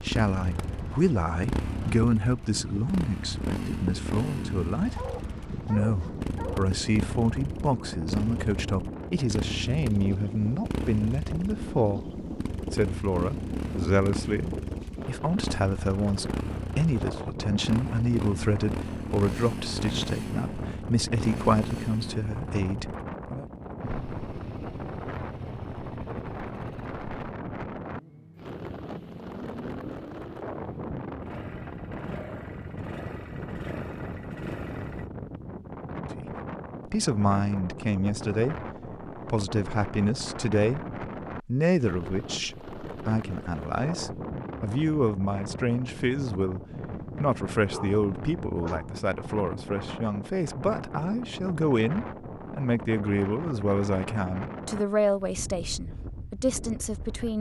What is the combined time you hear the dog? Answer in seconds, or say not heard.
3 s.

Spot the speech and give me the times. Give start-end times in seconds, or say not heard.
0.0-23.4, 36.1-46.6, 47.2-57.3.